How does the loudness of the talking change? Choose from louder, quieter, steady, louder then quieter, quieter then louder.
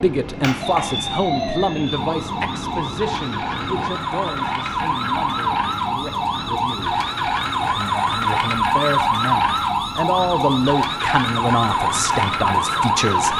quieter then louder.